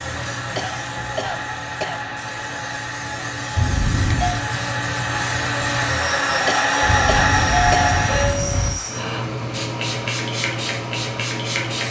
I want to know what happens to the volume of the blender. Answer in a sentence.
The volume of the blender goes up.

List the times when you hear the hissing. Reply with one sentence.
You can hear the hissing from 0.0 to 11.8 s.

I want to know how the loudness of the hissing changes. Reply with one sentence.
The volume of the hissing goes up.